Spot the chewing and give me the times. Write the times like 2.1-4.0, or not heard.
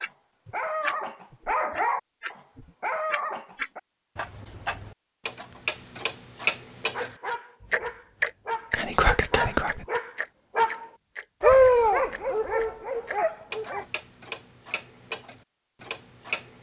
not heard.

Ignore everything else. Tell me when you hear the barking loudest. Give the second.
12 s.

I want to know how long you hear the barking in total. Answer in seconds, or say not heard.
11 s.